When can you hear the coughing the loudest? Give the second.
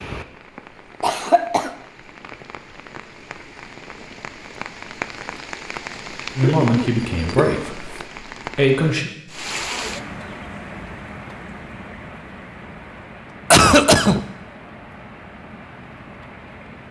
14 s.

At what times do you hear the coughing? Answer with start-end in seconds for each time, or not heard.
1.0-1.7, 6.4-8.0, 13.5-14.2.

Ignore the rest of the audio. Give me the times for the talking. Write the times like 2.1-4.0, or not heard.
6.3-9.1.